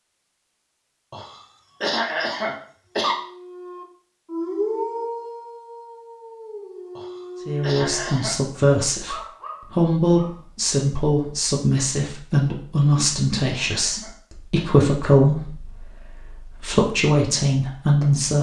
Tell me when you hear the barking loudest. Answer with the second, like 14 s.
5 s.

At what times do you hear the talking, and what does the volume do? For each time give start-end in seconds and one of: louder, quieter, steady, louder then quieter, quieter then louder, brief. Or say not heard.
7.5-18.3 steady.